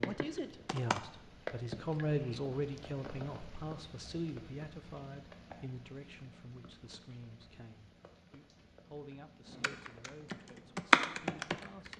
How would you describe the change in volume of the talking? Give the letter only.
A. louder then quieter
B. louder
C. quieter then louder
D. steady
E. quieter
E.